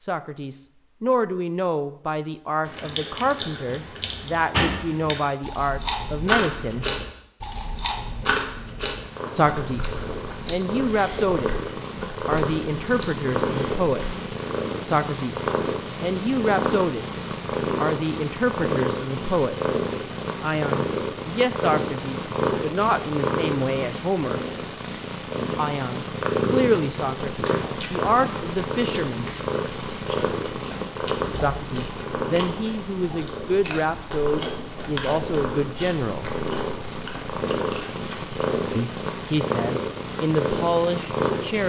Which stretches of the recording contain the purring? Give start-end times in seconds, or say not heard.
9.0-41.6.